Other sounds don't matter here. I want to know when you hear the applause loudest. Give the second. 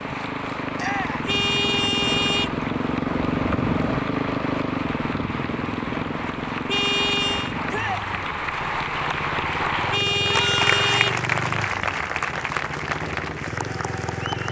11 s.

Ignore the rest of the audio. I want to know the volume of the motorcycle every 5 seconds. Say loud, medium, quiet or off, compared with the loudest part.
loud, medium, medium.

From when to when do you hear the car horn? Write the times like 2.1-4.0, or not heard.
1.2-2.5, 6.7-7.5, 9.9-11.2.